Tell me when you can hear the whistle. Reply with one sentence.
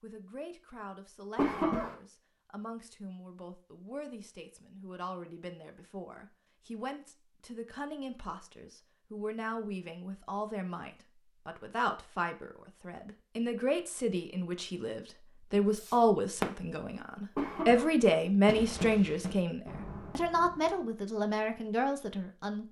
The whistle can't be heard in this clip.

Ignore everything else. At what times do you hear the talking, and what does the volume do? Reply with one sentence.
The talking can be heard from 0.0 to 22.6 s, getting louder.